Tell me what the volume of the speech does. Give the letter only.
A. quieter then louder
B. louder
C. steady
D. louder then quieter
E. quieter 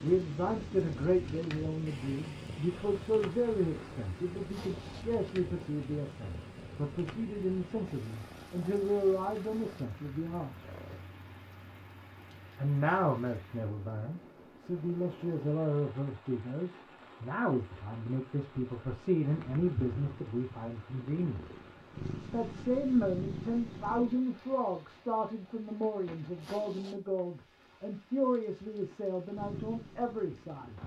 C.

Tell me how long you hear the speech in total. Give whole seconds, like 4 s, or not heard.
28 s.